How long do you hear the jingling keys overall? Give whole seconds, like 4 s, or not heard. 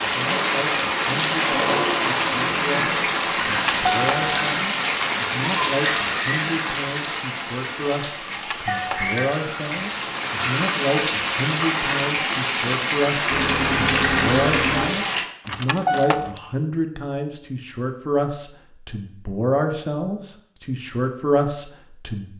3 s.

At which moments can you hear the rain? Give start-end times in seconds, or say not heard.
0.0-15.2.